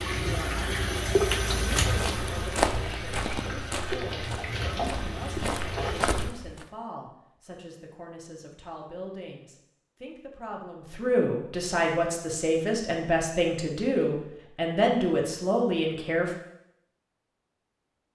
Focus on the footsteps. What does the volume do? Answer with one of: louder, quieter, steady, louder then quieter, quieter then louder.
quieter then louder.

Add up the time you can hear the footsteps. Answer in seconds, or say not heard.
5 s.